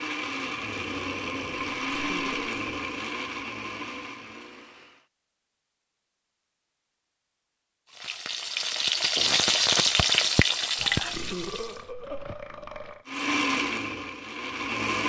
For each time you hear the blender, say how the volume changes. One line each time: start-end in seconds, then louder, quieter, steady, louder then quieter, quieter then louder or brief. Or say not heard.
0.0-5.0 quieter
13.1-15.0 brief.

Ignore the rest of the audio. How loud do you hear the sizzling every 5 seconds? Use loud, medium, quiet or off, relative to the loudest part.
off, loud, loud.